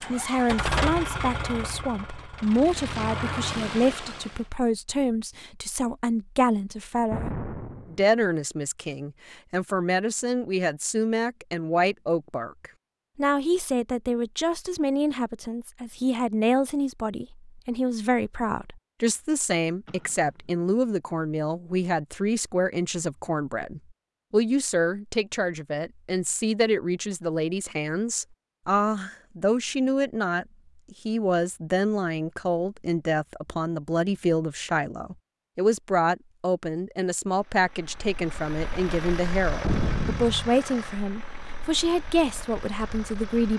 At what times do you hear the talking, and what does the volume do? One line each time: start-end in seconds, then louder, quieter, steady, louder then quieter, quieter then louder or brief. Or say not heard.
0.0-43.5 steady.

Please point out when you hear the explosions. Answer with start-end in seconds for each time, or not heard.
7.1-8.1, 19.9-20.3, 39.6-40.5.